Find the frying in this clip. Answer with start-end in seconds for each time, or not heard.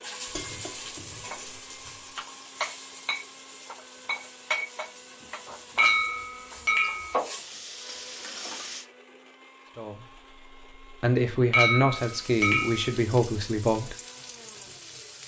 0.0-8.8, 11.9-15.2.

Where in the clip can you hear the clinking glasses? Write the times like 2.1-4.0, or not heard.
0.3-1.1, 5.8-7.2, 11.5-12.9.